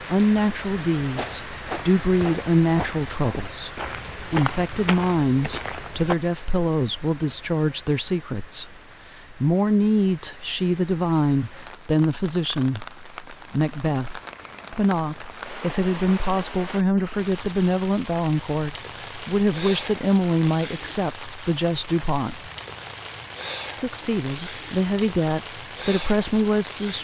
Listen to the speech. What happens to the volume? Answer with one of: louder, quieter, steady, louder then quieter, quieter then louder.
steady.